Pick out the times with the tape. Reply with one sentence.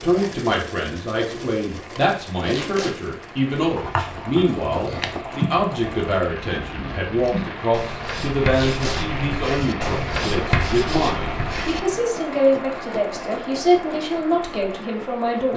You can hear the tape from 2.5 to 3.0 s and from 8.6 to 9.0 s.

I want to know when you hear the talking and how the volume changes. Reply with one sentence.
The talking can be heard from 0.0 to 15.5 s, at a steady volume.